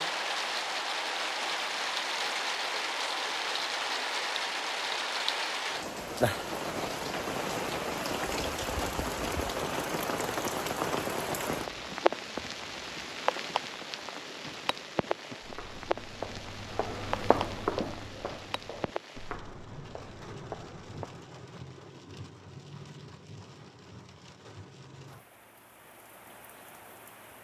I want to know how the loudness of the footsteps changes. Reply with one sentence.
The loudness of the footsteps goes up, then down.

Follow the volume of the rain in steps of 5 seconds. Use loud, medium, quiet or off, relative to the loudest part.
loud, loud, loud, medium, quiet, quiet.